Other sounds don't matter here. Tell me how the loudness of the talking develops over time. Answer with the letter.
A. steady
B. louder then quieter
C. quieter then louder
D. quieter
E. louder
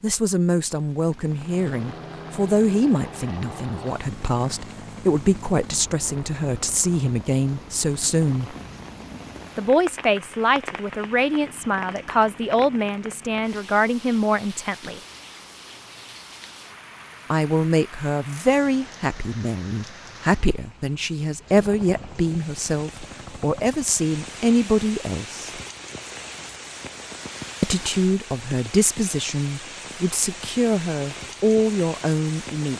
A.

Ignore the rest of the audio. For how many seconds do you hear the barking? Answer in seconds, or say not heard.
not heard.